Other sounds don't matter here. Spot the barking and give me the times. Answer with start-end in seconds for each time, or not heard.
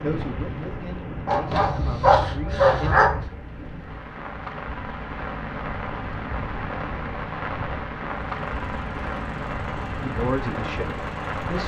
1.2-3.2.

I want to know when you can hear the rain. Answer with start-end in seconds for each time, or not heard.
0.0-11.6.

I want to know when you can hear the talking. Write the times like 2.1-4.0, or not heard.
0.0-3.1, 10.0-11.6.